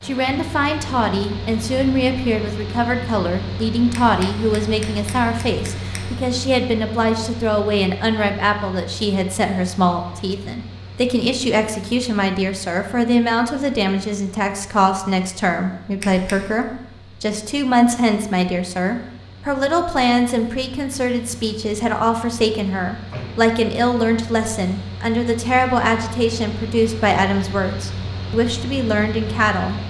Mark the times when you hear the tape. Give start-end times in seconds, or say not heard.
not heard.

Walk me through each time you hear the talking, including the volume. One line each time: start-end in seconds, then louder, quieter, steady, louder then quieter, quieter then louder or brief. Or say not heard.
0.0-29.8 steady.